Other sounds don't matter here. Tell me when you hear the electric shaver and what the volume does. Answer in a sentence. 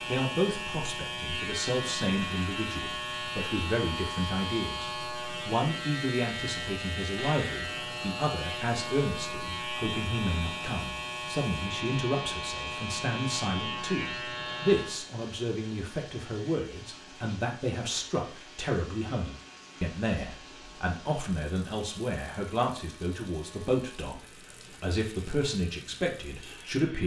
You can hear the electric shaver from 0.0 to 27.0 s, getting quieter.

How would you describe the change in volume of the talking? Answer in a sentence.
The volume of the talking stays about the same.